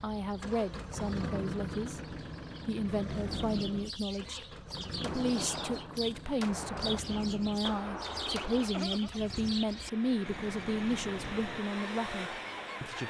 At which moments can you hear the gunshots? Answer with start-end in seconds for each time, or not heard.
5.0-8.8.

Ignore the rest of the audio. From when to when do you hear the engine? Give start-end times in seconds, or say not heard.
0.2-13.0.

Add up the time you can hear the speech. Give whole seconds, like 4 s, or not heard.
13 s.